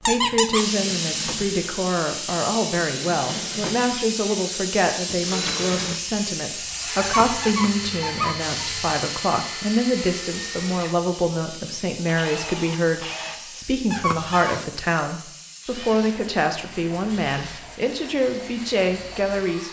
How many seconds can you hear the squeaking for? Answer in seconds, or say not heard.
3 s.